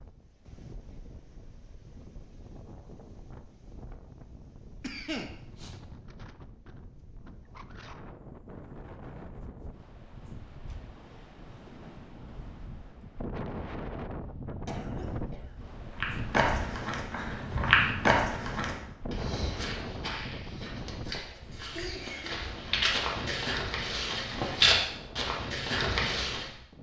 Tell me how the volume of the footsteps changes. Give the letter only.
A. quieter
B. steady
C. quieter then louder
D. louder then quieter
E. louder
C.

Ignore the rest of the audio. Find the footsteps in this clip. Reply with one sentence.
The footsteps can be heard from 16.0 to 26.4 s.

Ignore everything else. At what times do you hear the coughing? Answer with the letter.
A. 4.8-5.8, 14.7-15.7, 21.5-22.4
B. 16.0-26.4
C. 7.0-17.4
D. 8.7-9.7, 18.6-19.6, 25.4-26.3
A.